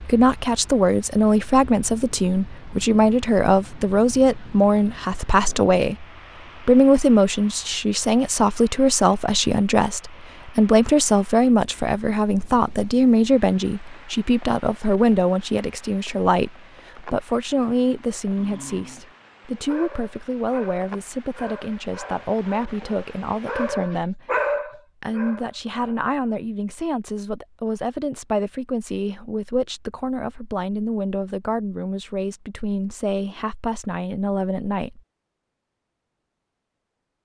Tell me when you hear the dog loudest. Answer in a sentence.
The loudest moment of the dog is at 24 seconds.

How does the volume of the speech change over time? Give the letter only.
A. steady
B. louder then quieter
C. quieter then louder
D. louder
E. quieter
E.